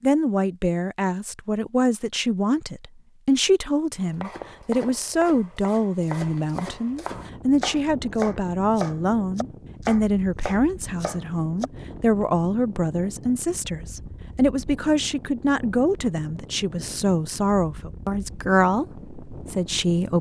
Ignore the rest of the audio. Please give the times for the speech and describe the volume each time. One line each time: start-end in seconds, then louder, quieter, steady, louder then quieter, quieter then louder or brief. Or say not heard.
0.0-20.1 steady.